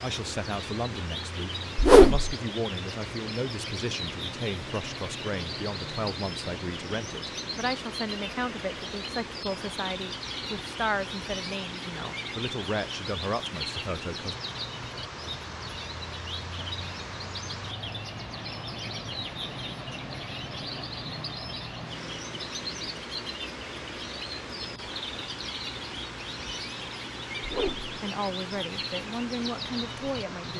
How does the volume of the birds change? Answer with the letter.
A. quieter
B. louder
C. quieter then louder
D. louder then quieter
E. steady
E.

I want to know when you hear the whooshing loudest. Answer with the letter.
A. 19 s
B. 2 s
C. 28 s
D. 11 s
B.